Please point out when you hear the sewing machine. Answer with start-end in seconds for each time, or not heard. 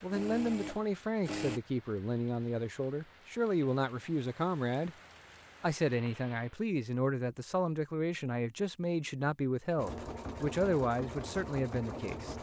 0.0-1.6, 9.8-12.3.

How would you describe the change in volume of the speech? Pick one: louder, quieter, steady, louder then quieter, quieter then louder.
steady.